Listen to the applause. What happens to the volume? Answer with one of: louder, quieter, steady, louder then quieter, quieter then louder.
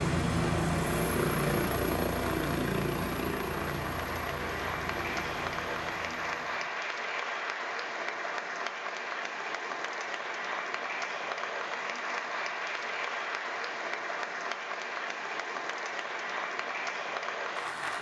steady.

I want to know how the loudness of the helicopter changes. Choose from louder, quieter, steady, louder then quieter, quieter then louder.
quieter.